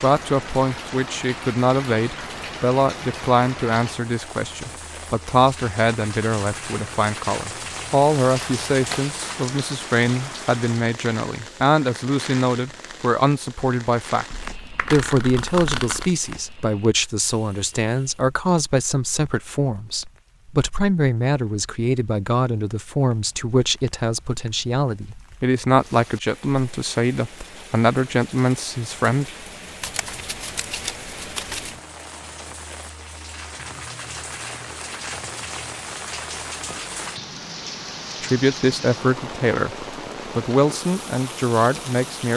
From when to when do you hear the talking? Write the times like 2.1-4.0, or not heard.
0.0-29.3, 38.2-42.3.